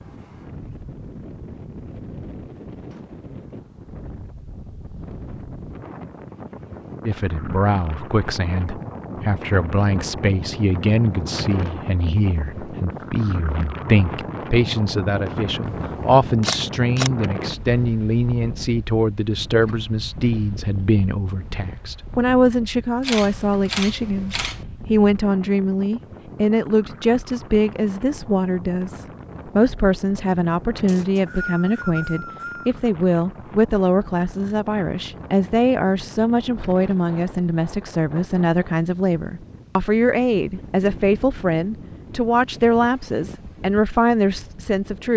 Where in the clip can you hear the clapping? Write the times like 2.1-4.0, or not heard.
not heard.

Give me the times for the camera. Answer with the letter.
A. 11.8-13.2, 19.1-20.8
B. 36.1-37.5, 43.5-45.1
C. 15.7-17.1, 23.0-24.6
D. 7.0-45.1
C.